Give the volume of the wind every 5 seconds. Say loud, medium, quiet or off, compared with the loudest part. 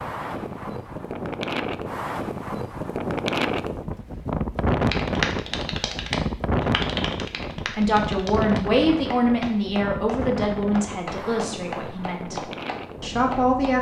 loud, loud, medium.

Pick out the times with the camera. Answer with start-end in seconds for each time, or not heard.
not heard.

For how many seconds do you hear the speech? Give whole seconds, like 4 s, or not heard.
6 s.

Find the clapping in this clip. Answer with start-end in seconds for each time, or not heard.
4.9-13.7.